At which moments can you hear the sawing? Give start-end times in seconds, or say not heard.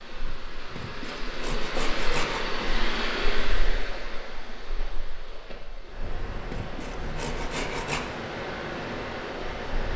0.2-2.5, 6.0-8.0.